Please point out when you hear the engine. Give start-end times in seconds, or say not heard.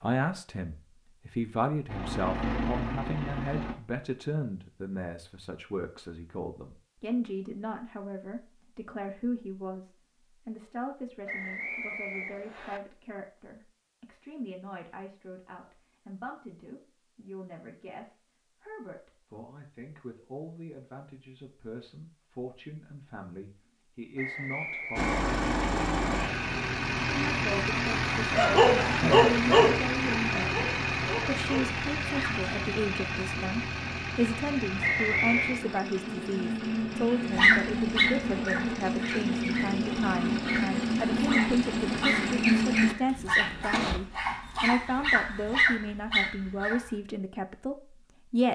1.9-3.8, 24.9-44.0.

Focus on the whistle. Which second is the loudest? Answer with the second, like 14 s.
35 s.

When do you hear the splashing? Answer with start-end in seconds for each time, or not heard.
not heard.